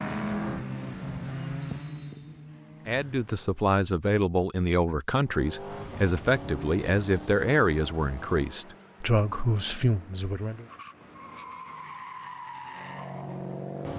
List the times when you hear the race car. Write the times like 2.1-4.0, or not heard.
0.0-3.6, 5.2-13.9.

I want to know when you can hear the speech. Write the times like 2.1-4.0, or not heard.
2.9-10.7.